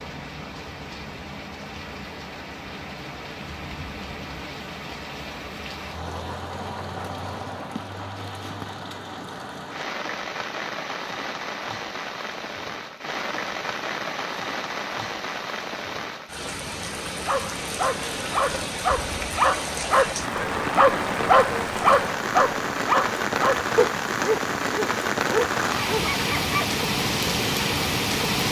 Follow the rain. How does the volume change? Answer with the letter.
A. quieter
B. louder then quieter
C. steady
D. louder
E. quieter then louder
D.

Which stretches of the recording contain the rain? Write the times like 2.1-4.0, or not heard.
0.0-28.4.